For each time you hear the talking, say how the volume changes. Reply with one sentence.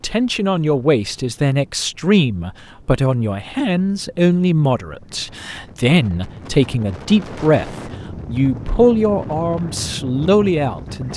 You can hear the talking from 0.0 to 11.1 s, at a steady volume.